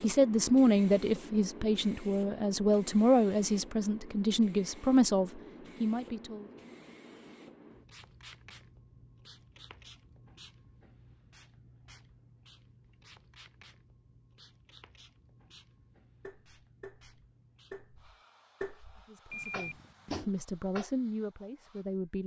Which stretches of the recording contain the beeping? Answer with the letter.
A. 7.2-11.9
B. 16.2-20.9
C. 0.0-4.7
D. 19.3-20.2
D.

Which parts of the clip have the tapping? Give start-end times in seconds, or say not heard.
16.2-20.9.